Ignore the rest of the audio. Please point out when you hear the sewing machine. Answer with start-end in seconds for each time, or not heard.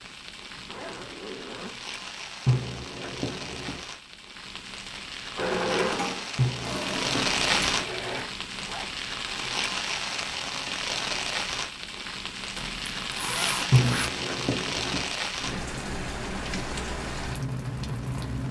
5.3-8.2.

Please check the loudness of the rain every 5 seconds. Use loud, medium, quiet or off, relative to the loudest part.
medium, loud, loud, loud.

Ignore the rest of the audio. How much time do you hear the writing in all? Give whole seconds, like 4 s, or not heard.
4 s.